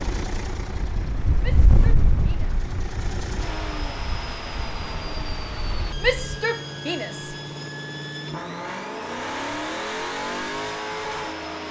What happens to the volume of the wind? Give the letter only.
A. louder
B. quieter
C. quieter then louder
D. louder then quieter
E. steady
B.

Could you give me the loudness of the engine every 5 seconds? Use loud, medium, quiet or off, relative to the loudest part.
medium, loud, loud.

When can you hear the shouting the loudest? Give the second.
6 s.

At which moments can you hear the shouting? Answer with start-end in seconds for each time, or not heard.
1.4-2.5, 6.0-7.3.